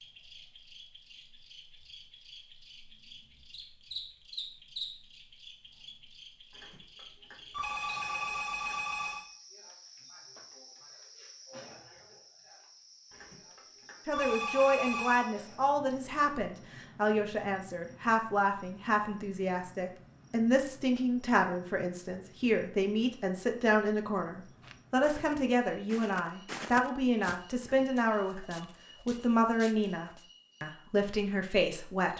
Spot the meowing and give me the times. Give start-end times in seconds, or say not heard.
not heard.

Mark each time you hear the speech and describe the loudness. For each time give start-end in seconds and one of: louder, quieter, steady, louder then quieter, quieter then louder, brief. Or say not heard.
14.1-32.1 steady.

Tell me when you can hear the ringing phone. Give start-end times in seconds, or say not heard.
6.5-9.2, 13.1-15.3, 27.6-28.6.